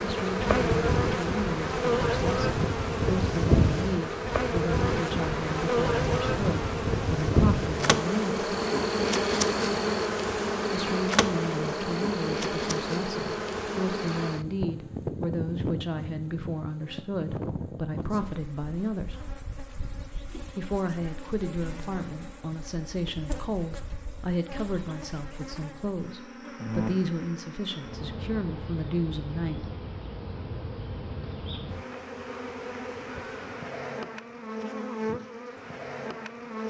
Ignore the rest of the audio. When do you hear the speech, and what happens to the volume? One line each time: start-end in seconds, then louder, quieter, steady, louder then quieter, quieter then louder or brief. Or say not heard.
0.0-8.6 steady
10.7-19.2 steady
20.5-29.7 steady.